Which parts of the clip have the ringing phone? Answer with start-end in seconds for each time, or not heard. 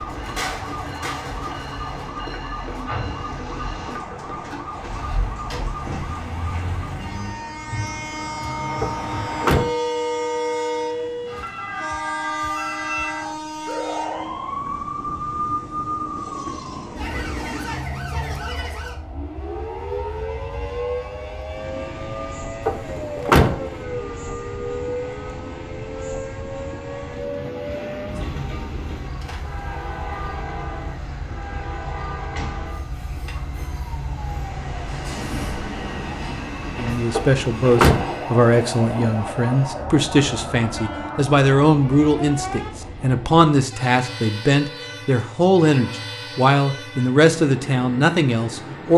not heard.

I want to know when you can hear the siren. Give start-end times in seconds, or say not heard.
0.0-42.7.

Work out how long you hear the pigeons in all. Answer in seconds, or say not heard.
not heard.